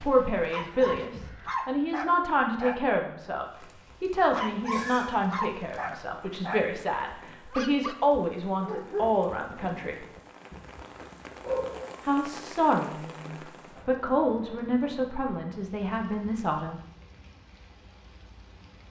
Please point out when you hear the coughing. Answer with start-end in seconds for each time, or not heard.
4.6-5.2.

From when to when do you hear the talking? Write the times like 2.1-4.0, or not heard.
0.0-10.1, 12.1-16.8.